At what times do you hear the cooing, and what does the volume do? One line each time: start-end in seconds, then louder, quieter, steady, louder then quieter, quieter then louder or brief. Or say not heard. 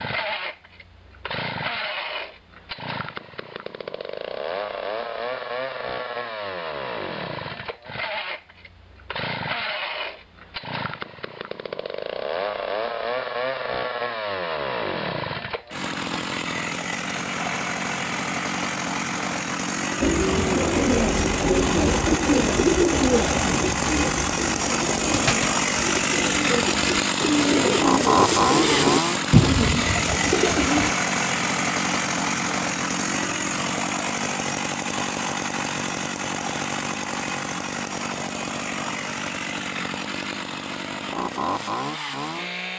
20.0-30.9 quieter then louder.